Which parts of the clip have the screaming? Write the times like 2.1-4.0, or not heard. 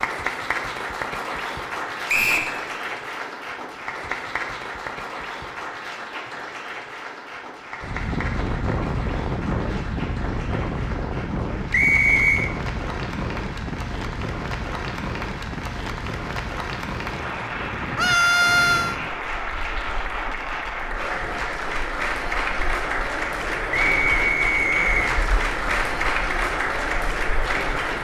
17.9-18.9.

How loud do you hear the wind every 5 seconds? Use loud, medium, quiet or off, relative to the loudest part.
off, loud, loud, medium, quiet, quiet.